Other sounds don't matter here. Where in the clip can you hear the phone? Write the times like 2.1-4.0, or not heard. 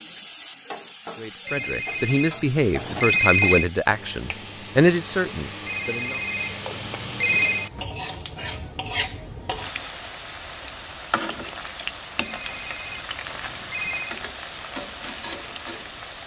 1.4-3.6, 5.7-7.7, 12.2-14.2.